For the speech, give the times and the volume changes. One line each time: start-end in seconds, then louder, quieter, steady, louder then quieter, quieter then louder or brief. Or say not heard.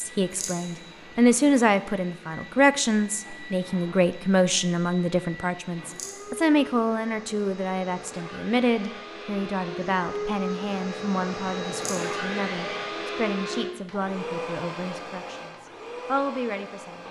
0.0-17.0 quieter.